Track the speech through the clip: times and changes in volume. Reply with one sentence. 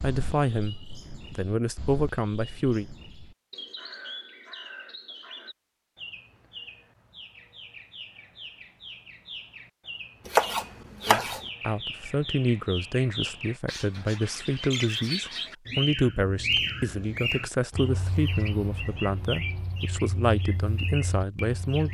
The speech can be heard briefly from 0.0 to 2.9 s; and from 11.1 to 21.8 s, at a steady volume.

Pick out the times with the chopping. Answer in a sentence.
You can hear the chopping from 10.2 to 11.4 s.